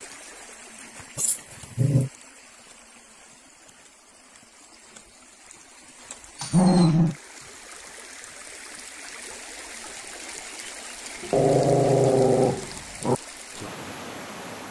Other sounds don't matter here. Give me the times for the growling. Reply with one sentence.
The growling can be heard from 1.1 to 2.1 s, from 6.4 to 7.2 s and from 11.2 to 13.2 s.